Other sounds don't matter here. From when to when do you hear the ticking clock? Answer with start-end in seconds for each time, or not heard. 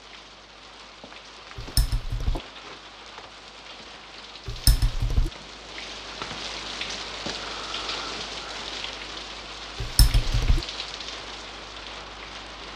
not heard.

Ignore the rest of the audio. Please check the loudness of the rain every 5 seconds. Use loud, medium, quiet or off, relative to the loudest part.
medium, loud, loud.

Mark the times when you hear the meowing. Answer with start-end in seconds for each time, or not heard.
1.6-2.4, 4.5-5.3, 9.8-10.7.